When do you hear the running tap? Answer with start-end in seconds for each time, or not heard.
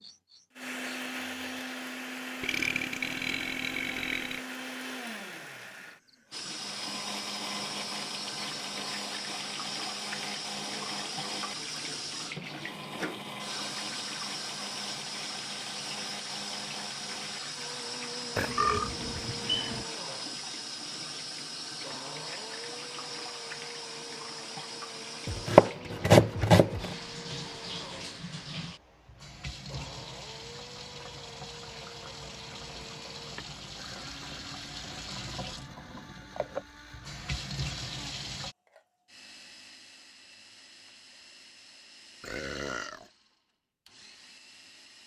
6.3-38.5.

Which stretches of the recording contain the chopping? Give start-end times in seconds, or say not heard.
25.2-26.9.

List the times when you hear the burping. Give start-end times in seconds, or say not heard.
2.4-4.4, 18.4-19.9, 42.2-43.1.